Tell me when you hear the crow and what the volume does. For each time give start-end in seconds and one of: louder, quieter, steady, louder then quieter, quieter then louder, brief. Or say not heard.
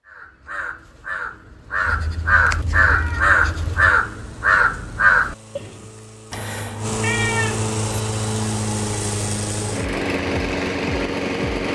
0.1-5.8 louder.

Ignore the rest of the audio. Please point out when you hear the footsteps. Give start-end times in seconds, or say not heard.
not heard.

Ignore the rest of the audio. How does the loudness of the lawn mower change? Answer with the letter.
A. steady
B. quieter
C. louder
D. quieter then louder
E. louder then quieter
C.